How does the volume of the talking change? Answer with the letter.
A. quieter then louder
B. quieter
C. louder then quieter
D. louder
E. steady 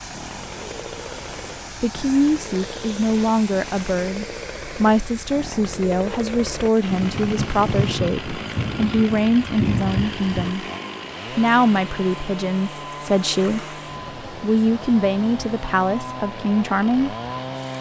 E.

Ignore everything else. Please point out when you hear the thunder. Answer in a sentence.
You can hear the thunder from 6.8 to 10.6 s.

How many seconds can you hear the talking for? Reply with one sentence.
You can hear the talking for 15 seconds altogether.